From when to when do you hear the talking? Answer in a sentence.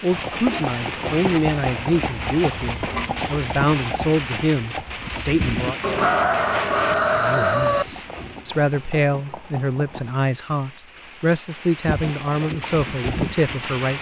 The talking can be heard from 0.0 to 5.8 s and from 7.2 to 13.9 s.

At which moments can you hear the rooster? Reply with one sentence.
The rooster can be heard from 5.8 to 7.8 s.